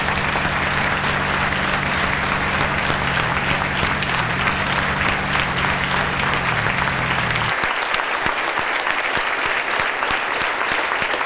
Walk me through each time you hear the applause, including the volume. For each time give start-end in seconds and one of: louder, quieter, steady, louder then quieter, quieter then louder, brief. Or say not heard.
0.0-11.2 steady.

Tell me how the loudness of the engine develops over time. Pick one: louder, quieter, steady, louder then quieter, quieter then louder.
steady.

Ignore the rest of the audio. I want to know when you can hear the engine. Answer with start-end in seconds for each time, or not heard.
0.0-7.5.